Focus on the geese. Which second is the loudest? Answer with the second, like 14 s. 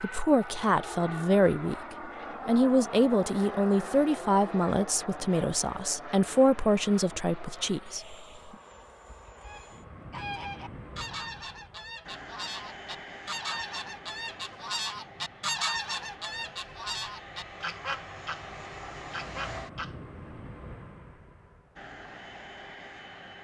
16 s.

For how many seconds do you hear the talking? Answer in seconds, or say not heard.
8 s.